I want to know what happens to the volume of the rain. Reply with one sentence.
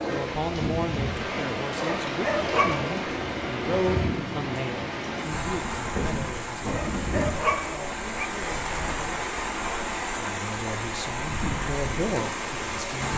The volume of the rain stays about the same.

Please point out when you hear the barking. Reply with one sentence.
The barking can be heard from 1.8 to 2.9 s and from 6.7 to 8.3 s.